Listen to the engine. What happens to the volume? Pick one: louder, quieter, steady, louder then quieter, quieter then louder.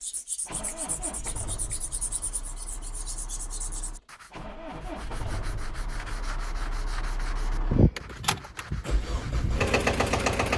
quieter then louder.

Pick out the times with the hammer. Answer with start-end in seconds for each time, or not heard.
not heard.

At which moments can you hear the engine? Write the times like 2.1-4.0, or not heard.
0.0-10.5.